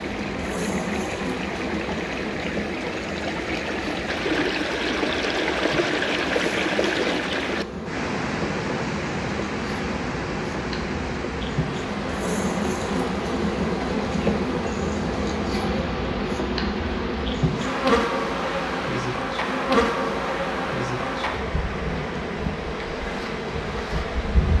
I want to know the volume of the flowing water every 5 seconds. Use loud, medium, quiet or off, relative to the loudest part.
loud, loud, medium, medium, medium.